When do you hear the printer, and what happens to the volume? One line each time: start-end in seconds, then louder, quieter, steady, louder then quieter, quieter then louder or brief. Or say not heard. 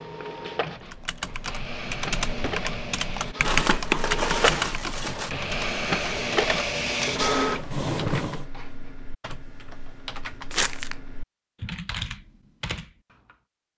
0.0-8.4 louder.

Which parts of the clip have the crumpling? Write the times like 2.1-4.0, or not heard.
3.4-5.3, 10.5-10.9.